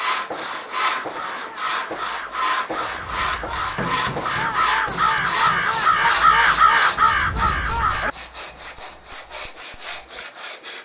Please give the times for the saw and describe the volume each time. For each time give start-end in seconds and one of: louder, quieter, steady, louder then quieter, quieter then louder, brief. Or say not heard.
0.0-10.8 quieter.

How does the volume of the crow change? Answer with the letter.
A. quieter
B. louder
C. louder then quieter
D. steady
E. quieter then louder
B.